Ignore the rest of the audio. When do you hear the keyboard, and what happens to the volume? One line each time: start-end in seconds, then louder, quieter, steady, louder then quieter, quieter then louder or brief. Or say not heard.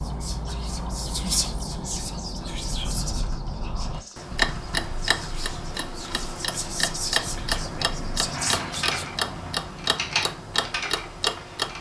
2.4-11.7 louder.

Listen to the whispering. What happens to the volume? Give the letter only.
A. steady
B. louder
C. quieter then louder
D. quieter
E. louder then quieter
C.